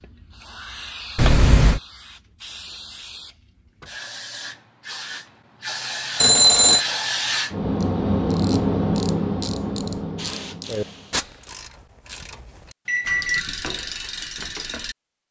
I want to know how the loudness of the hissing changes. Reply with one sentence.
The volume of the hissing goes up.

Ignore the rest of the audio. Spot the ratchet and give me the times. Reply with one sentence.
You can hear the ratchet from 7.8 to 15.2 s.